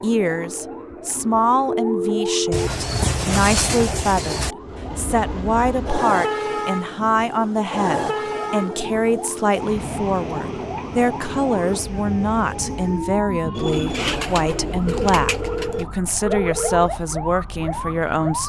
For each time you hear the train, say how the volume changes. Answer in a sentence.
You can hear the train from 4.6 to 13.2 s, getting quieter.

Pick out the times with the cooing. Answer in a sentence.
You can hear the cooing from 2.5 to 4.5 s and from 13.6 to 15.9 s.